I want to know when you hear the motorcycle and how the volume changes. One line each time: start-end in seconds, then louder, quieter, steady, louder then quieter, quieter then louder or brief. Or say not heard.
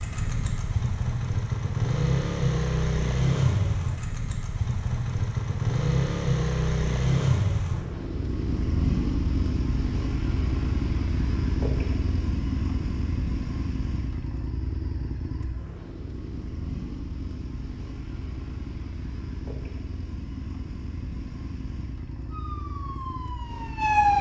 0.0-24.1 quieter.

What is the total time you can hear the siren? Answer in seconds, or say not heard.
2 s.